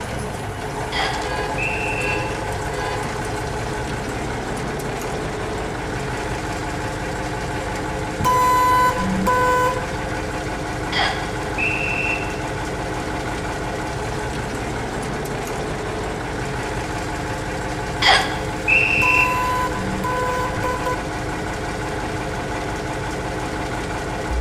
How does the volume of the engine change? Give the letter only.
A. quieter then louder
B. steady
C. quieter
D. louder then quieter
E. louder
B.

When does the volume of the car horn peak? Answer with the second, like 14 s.
9 s.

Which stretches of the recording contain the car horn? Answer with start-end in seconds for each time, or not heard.
1.2-3.1, 8.2-9.8, 18.9-20.9.